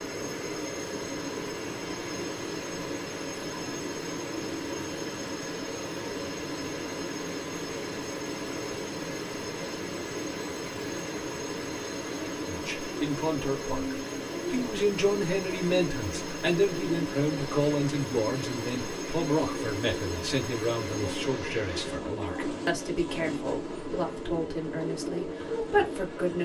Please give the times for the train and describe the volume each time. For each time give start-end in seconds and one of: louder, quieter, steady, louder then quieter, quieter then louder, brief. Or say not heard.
0.0-26.3 steady.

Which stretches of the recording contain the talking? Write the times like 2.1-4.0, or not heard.
12.4-26.3.